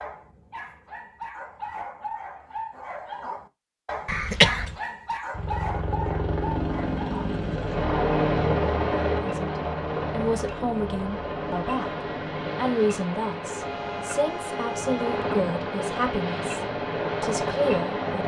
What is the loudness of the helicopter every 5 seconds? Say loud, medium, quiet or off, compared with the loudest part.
off, loud, medium, loud.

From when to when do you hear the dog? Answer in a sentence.
The dog can be heard from 0.0 to 7.3 s.